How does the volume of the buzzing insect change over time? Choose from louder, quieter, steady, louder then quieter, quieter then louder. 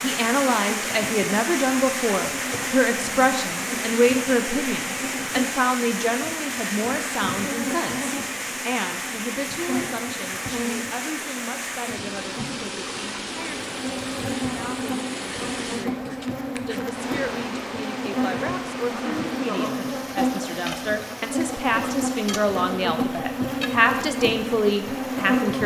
louder.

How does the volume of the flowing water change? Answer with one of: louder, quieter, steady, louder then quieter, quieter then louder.
quieter.